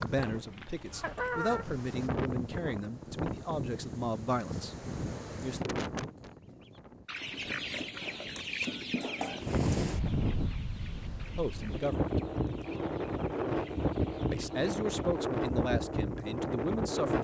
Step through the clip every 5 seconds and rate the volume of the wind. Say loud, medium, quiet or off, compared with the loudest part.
medium, medium, loud, loud.